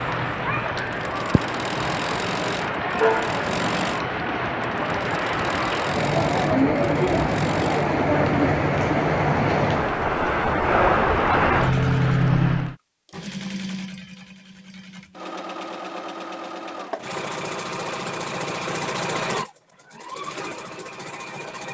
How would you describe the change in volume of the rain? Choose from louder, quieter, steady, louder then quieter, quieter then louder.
louder.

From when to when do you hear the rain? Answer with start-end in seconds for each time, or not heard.
0.0-12.8.